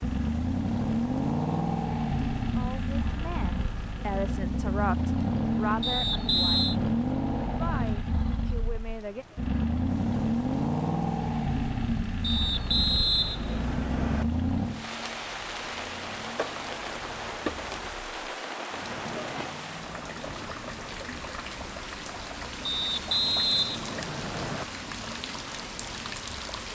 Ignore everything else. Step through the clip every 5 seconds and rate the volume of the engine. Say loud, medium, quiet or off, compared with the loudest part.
loud, loud, loud, quiet, quiet, quiet.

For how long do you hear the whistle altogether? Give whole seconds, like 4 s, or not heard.
5 s.